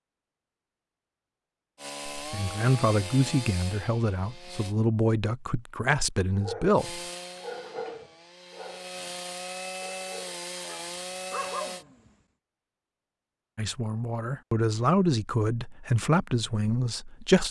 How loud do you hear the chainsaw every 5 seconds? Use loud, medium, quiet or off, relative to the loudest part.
loud, loud, loud, off.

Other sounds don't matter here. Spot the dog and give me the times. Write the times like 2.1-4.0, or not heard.
6.3-9.2, 9.8-12.1.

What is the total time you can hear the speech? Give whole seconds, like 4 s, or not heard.
9 s.